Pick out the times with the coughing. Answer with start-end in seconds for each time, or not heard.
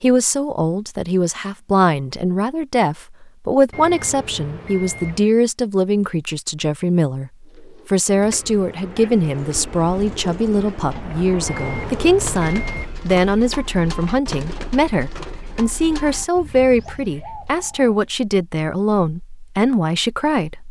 not heard.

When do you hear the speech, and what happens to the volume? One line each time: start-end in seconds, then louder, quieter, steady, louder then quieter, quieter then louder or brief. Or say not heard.
0.0-20.6 steady.